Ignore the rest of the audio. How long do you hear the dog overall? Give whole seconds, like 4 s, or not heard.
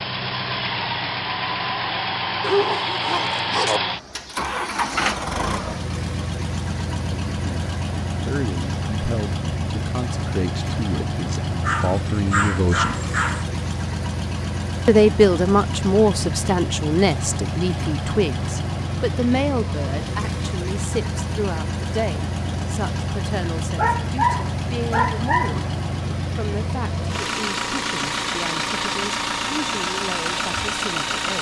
5 s.